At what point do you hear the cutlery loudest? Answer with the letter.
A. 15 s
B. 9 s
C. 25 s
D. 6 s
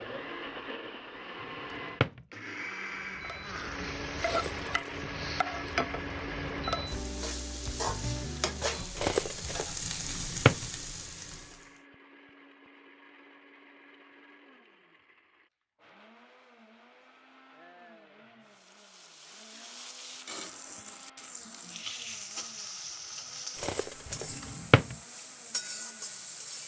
B.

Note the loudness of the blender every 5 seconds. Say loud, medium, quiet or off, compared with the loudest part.
loud, loud, quiet, quiet, quiet, quiet.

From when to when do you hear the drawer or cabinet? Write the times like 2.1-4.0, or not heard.
1.7-2.2, 10.2-10.7, 24.5-24.9.